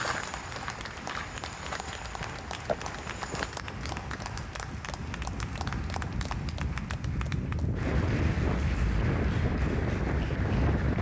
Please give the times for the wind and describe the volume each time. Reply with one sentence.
The wind can be heard from 0.0 to 10.9 s, getting louder.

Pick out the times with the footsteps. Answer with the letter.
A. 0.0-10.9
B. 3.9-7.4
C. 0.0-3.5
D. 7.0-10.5
C.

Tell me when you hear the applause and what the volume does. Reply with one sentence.
The applause can be heard from 0.0 to 10.9 s, at a steady volume.